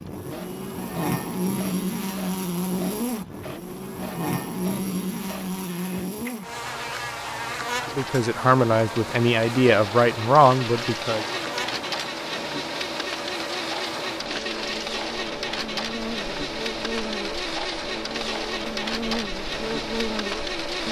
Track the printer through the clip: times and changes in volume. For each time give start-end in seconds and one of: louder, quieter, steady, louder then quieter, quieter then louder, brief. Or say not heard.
0.0-20.8 louder.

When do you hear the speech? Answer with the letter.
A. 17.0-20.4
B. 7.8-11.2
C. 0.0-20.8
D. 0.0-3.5
B.